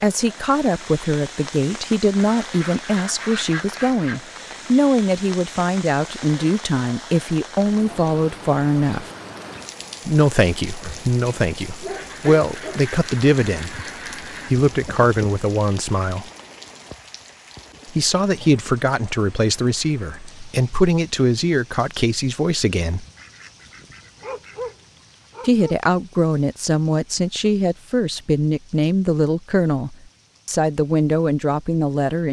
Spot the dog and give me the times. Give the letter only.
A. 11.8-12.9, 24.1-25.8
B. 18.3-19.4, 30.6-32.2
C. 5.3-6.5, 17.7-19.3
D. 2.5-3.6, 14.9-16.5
A.